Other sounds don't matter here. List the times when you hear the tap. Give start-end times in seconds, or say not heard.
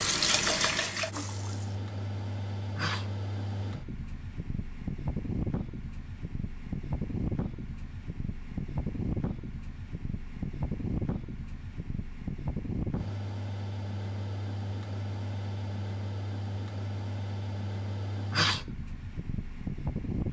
0.0-1.8.